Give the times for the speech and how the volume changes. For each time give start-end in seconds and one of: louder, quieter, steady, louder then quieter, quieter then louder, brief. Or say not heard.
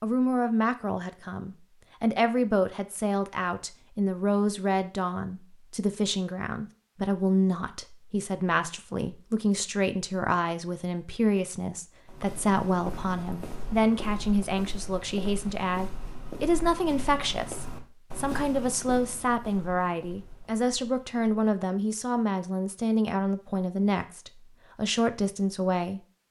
0.0-26.2 steady.